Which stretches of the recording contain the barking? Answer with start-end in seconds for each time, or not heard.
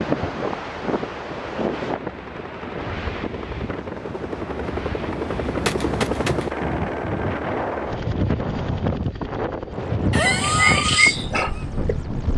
10.1-11.9.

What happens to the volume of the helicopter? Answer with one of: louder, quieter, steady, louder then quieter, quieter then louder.
louder then quieter.